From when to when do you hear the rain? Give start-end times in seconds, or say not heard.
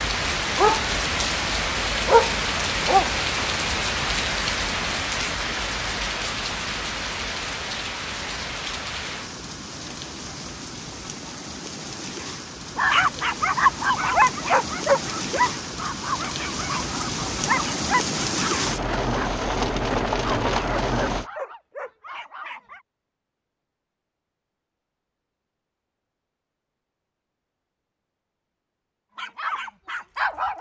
0.0-21.3.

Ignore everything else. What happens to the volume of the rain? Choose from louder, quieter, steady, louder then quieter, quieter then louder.
quieter then louder.